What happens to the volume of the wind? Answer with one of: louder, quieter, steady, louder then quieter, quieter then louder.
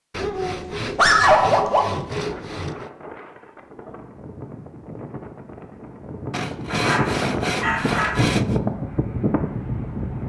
louder.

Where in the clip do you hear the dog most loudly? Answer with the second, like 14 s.
1 s.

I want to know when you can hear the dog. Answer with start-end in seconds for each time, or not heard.
0.2-1.9, 6.7-8.2.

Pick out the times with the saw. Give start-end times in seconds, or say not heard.
0.1-2.9, 6.3-8.6.